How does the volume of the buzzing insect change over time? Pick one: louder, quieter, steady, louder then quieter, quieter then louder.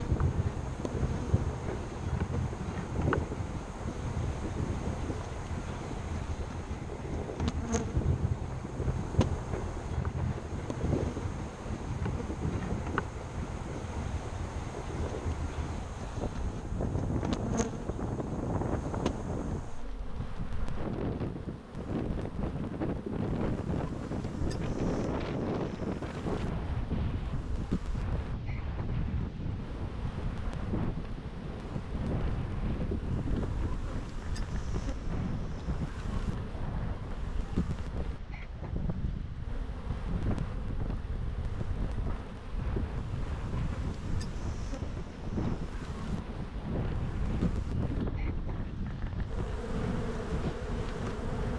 steady.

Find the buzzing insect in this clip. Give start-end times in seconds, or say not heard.
0.0-51.5.